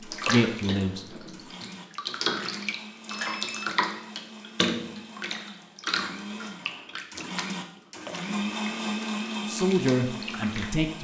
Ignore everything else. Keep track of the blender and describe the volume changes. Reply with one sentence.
The loudness of the blender goes up.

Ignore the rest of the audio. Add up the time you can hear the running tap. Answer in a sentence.
The running tap can be heard for 11 seconds in total.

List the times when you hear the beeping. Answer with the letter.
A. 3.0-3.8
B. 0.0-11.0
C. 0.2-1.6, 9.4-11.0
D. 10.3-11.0
A.